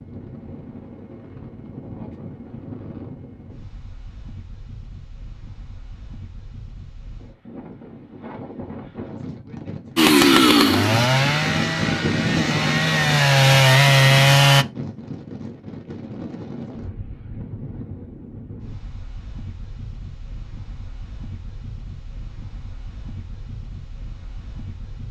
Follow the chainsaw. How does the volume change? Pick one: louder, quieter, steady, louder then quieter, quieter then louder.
quieter then louder.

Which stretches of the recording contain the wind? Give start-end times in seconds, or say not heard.
0.0-25.0.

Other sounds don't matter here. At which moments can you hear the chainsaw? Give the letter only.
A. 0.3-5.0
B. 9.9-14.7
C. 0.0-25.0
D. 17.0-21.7
B.